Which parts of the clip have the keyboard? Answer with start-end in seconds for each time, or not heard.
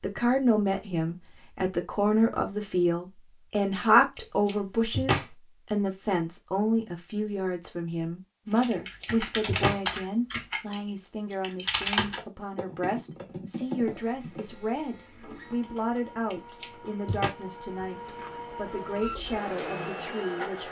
8.5-14.6.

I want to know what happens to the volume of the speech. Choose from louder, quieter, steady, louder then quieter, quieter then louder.
quieter.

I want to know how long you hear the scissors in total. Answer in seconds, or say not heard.
3 s.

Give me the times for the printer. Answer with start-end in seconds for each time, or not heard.
13.7-20.6.